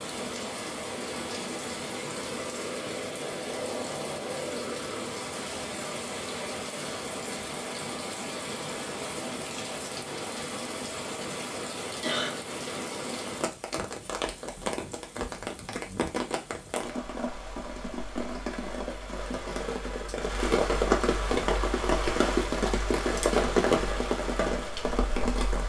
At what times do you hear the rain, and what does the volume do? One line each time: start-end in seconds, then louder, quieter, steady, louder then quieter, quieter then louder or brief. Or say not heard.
0.0-25.6 louder.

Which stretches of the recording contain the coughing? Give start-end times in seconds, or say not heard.
12.0-12.5.